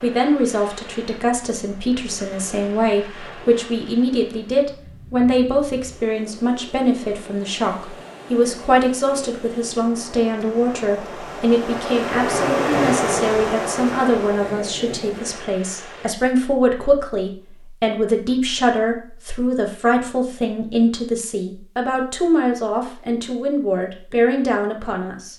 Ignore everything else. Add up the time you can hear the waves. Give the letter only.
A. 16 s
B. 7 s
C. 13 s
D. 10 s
A.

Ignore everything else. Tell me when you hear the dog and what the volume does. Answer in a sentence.
You can't hear the dog here.